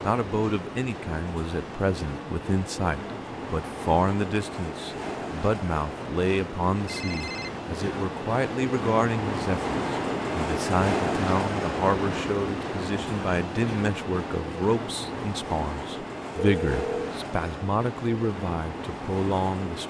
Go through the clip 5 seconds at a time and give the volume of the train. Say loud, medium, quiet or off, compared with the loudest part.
medium, loud, loud, medium.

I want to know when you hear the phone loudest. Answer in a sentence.
The volume of the phone peaks at 17 seconds.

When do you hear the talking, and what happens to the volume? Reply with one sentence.
The talking can be heard from 0.1 to 19.8 s, at a steady volume.